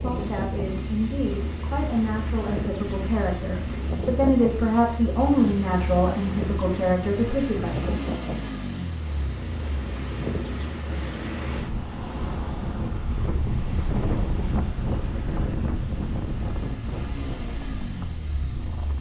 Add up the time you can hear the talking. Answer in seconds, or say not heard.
8 s.